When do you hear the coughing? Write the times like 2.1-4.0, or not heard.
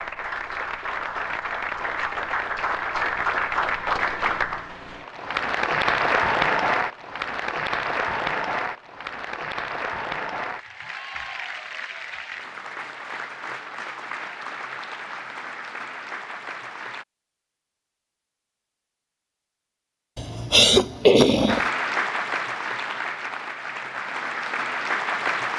20.1-21.6.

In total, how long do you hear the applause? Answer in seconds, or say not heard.
21 s.